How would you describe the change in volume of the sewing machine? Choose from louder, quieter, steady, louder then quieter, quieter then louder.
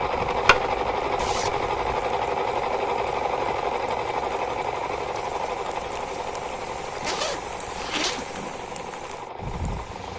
quieter.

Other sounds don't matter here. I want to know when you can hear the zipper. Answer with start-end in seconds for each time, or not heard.
0.1-2.0, 7.0-8.2.